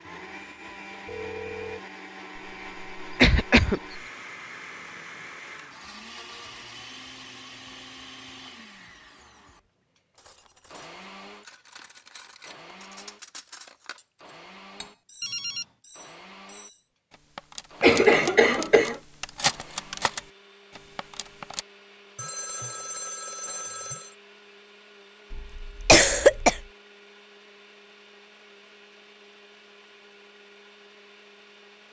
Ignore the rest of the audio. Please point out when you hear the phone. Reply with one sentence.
You can hear the phone from 1.1 to 1.8 s, from 15.2 to 15.7 s and from 22.1 to 24.1 s.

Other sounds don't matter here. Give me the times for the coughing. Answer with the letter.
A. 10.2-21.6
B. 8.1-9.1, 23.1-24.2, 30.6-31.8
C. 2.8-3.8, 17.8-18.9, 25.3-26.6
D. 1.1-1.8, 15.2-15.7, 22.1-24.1
C.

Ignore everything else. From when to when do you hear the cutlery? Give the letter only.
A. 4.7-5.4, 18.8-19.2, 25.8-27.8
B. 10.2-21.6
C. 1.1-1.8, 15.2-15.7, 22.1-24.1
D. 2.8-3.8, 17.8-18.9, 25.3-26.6
B.